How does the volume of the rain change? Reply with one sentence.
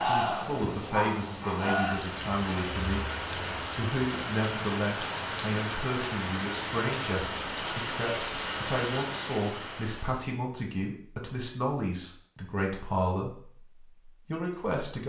The volume of the rain stays about the same.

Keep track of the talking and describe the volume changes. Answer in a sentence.
The loudness of the talking stays about the same.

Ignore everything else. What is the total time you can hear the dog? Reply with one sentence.
The dog can be heard for 2 seconds in total.